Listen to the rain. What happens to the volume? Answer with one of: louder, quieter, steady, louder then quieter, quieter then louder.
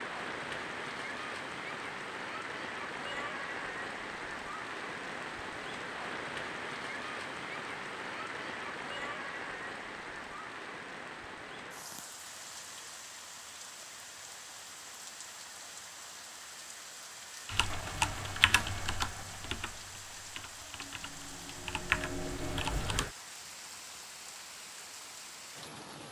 quieter.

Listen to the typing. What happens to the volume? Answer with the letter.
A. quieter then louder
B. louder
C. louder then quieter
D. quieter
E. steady
A.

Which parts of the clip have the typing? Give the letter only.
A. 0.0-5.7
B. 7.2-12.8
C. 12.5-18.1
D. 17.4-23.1
D.